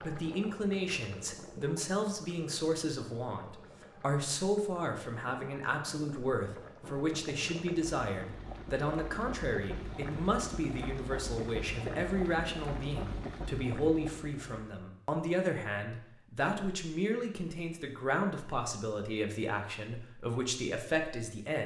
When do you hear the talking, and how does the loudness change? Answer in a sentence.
You can hear the talking from 0.0 to 21.6 s, at a steady volume.